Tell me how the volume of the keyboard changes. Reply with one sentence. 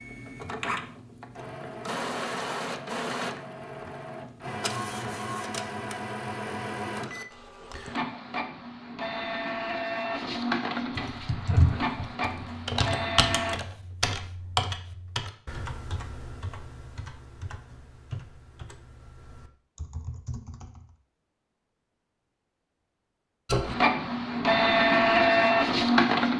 The volume of the keyboard goes down.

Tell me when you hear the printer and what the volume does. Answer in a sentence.
You can hear the printer from 0.0 to 13.6 s, at a steady volume; and briefly from 23.4 to 26.3 s.